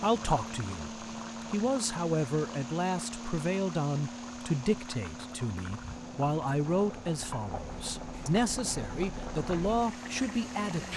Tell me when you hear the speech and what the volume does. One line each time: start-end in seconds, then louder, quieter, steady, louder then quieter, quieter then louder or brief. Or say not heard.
0.0-10.9 steady.